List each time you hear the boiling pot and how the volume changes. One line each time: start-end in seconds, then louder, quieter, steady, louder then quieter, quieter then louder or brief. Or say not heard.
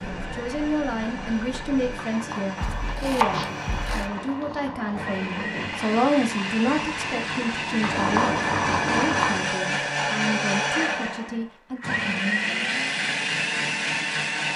0.0-9.6 louder.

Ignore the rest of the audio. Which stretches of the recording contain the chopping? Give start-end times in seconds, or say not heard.
2.5-4.1.